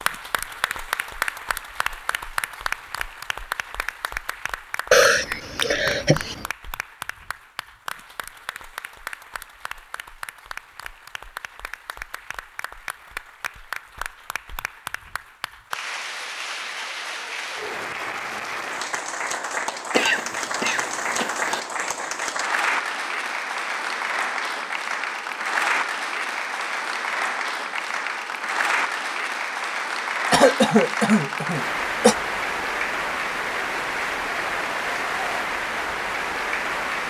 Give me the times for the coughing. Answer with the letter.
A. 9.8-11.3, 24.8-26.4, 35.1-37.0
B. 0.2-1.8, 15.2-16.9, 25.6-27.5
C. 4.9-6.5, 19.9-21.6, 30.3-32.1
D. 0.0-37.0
C.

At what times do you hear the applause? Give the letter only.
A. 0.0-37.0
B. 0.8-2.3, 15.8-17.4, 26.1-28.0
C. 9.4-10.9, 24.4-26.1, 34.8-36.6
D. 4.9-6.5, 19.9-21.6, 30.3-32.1
A.